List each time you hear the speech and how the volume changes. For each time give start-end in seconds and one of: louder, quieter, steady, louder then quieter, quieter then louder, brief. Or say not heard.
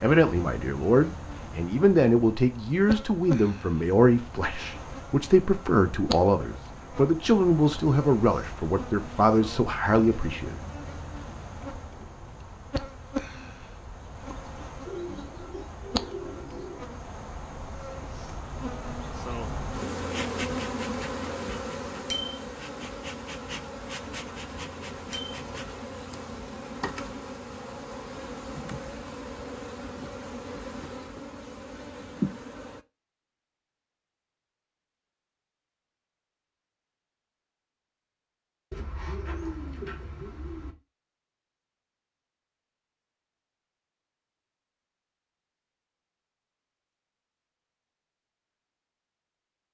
0.0-10.7 steady.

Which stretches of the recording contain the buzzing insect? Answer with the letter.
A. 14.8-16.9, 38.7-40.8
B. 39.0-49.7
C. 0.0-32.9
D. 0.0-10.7
C.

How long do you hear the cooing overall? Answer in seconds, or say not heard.
4 s.